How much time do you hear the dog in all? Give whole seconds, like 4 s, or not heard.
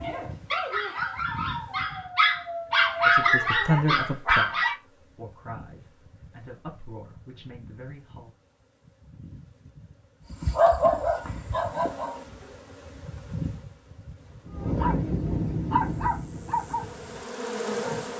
10 s.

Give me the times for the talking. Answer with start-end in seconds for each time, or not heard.
3.0-8.3.